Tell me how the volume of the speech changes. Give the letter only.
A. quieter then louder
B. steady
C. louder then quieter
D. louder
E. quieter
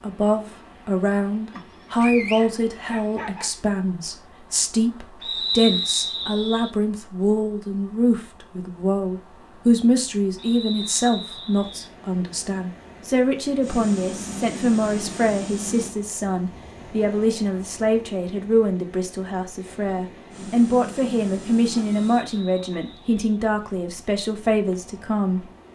B.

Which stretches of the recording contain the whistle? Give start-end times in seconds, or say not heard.
5.2-6.7, 10.3-11.9, 22.0-23.1.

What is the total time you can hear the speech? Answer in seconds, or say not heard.
26 s.